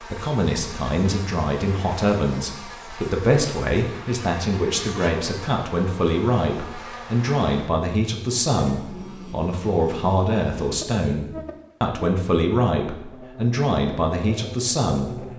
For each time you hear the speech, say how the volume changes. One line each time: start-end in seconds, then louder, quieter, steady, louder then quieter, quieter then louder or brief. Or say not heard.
0.0-15.3 steady.